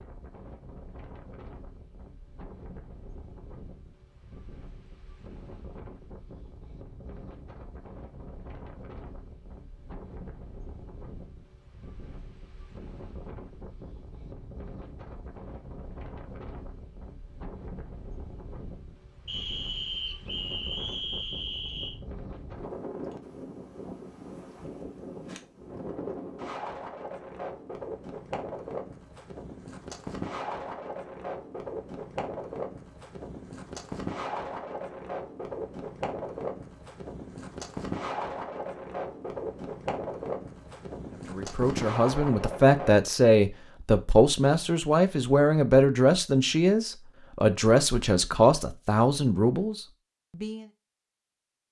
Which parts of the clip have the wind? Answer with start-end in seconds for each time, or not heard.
0.0-43.0.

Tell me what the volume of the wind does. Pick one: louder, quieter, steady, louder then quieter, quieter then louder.
louder.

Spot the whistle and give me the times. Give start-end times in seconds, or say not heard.
19.2-21.9.